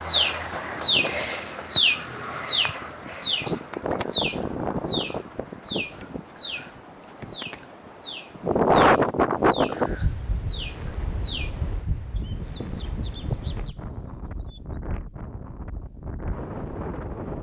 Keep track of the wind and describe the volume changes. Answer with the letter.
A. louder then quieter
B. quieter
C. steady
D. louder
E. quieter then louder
A.